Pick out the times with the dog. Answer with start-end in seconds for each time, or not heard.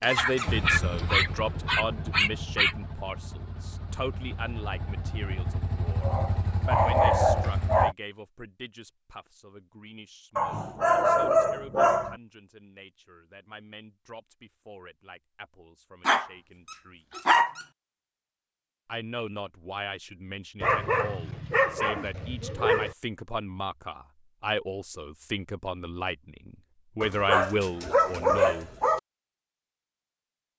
0.1-2.8, 6.0-8.0, 10.3-12.2, 16.1-17.6, 20.6-22.9, 27.0-29.0.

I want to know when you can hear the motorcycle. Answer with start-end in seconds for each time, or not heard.
0.0-8.0.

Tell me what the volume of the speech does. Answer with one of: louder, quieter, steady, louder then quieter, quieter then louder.
quieter then louder.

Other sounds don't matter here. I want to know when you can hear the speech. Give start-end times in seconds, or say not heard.
0.0-17.1, 18.9-28.7.